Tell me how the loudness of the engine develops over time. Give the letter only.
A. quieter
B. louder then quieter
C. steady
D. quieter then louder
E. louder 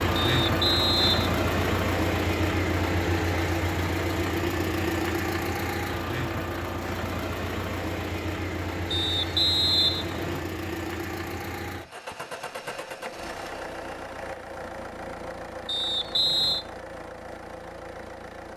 A.